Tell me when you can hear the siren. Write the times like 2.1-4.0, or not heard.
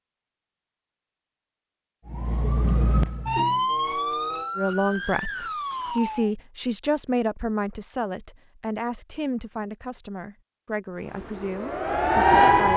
2.0-6.3, 10.9-12.7.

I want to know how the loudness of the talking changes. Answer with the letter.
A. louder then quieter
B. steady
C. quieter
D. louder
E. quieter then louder
C.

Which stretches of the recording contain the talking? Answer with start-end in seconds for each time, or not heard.
4.5-12.7.